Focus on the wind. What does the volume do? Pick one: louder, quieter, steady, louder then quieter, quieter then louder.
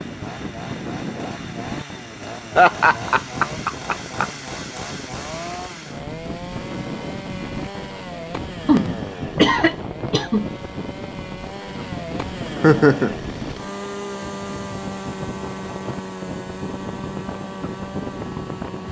steady.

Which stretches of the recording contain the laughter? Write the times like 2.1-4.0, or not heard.
2.5-4.2, 8.7-10.4, 12.6-13.2.